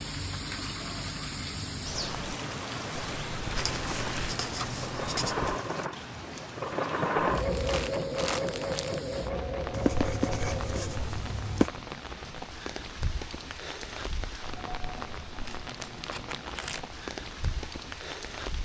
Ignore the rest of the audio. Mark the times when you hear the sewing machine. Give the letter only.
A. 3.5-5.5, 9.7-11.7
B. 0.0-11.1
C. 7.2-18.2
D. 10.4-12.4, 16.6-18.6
B.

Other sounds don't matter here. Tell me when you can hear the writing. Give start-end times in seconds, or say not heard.
3.5-5.5, 9.7-11.7.